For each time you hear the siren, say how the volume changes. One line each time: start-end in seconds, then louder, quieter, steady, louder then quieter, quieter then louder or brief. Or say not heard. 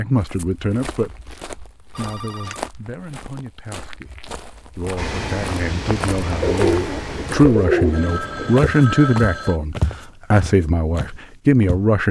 not heard.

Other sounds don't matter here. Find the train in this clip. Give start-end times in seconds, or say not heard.
5.0-7.3.